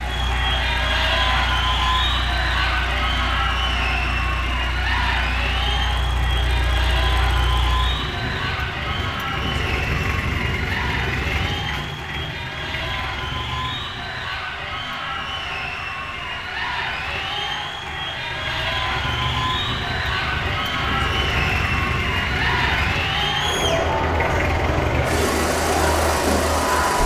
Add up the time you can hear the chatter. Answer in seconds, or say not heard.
27 s.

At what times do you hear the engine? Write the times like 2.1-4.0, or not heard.
0.0-27.0.